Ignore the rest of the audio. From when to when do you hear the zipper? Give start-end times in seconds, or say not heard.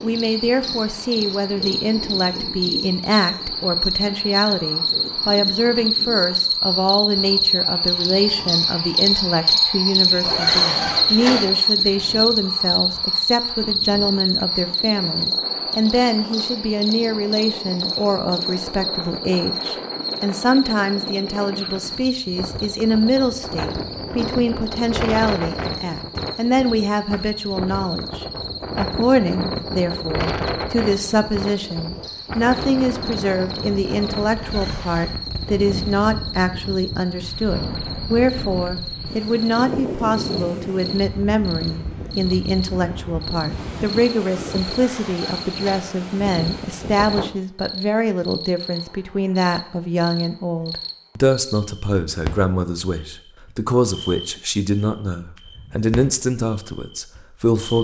10.2-11.5, 34.4-35.1, 44.6-45.9.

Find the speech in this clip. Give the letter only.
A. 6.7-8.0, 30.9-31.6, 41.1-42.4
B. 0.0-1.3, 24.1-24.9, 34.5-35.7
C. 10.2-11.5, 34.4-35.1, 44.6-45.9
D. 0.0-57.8
D.